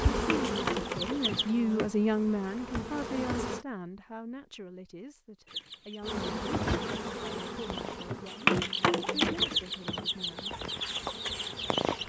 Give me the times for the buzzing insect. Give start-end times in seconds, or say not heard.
0.0-3.6, 6.0-12.0.